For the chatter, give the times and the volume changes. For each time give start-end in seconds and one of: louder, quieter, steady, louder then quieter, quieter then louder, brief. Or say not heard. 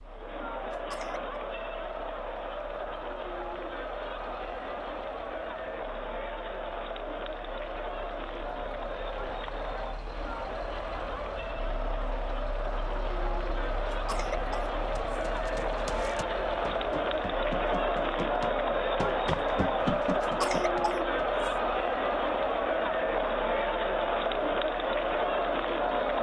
0.0-26.1 louder.